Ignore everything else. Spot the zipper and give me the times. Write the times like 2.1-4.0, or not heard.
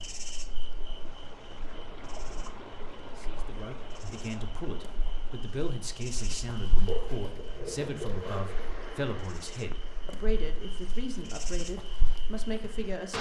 6.8-8.9.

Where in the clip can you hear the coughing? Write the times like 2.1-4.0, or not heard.
not heard.